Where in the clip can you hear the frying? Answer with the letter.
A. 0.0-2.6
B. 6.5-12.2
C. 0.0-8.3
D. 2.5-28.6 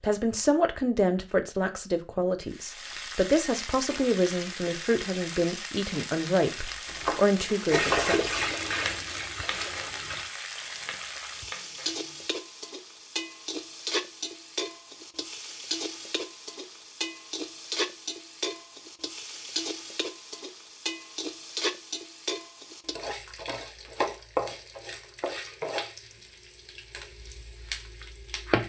D.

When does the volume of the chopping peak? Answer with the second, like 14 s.
8 s.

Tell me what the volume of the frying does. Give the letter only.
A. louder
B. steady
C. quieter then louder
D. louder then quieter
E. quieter
B.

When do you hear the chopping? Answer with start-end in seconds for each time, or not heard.
6.5-12.2.